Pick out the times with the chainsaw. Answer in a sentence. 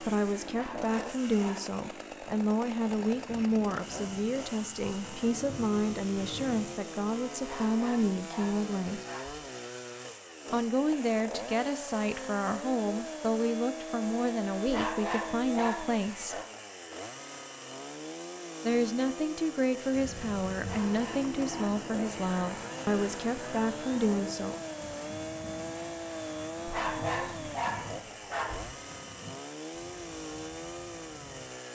You can hear the chainsaw from 0.0 to 31.6 s.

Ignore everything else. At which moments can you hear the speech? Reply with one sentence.
You can hear the speech from 0.0 to 9.0 s, from 10.5 to 16.4 s and from 18.6 to 24.6 s.